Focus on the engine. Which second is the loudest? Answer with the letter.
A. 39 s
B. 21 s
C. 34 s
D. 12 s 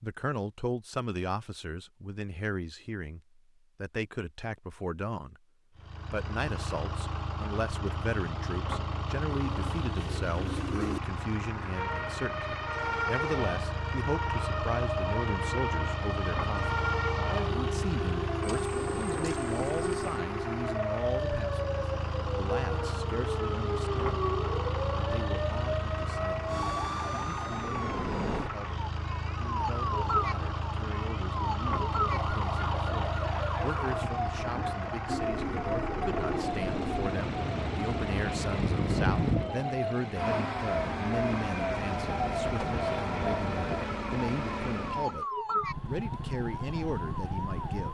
A.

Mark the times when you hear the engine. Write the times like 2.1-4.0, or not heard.
5.8-45.2.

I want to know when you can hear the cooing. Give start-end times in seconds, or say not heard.
9.4-11.0, 18.4-20.2, 35.0-37.1.